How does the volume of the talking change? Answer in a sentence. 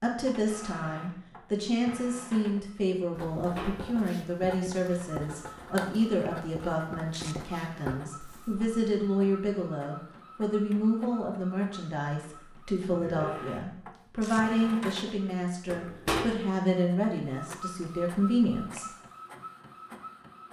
The loudness of the talking stays about the same.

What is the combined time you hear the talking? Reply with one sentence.
You can hear the talking for 19 seconds altogether.